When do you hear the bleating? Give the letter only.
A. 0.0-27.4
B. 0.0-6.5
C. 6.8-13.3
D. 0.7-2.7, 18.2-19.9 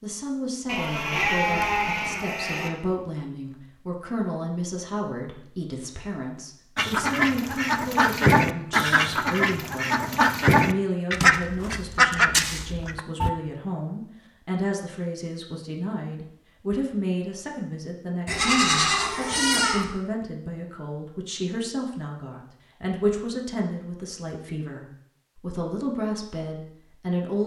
D.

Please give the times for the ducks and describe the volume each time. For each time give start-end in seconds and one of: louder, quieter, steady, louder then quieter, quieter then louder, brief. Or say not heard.
6.8-13.3 steady.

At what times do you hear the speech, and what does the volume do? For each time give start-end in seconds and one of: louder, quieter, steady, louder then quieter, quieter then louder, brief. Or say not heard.
0.0-27.4 steady.